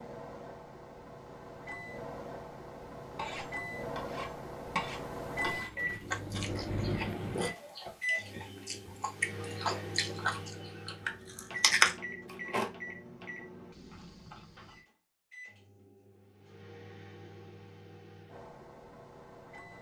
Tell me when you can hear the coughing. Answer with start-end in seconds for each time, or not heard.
not heard.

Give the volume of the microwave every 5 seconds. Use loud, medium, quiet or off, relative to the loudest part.
medium, loud, medium, quiet.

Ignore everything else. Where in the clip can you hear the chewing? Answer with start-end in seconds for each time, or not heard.
5.4-12.7.